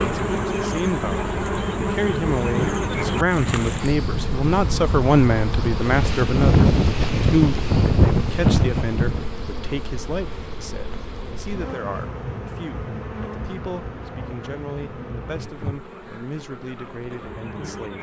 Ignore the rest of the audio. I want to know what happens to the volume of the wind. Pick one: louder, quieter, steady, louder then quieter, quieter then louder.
louder.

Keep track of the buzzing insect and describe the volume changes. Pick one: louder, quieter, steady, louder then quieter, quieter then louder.
quieter.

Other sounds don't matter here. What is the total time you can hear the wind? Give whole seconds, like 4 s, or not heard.
9 s.